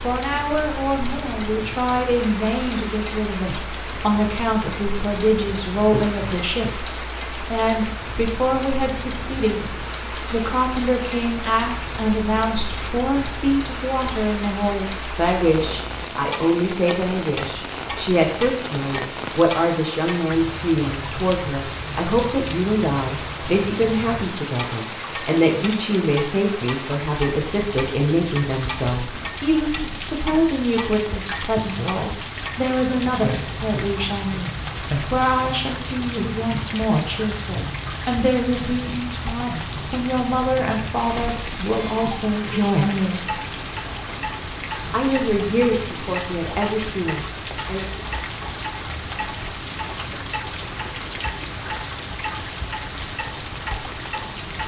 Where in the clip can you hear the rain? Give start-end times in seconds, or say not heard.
0.0-54.6.